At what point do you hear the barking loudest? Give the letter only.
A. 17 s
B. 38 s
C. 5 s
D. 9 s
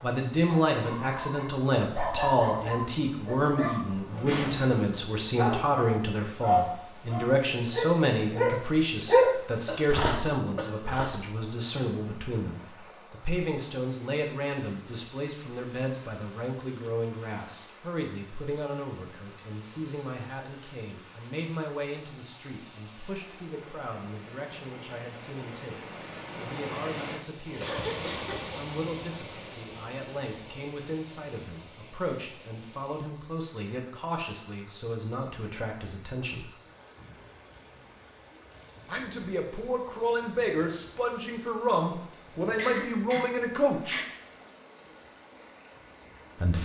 D.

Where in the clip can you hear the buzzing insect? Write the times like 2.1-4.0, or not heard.
not heard.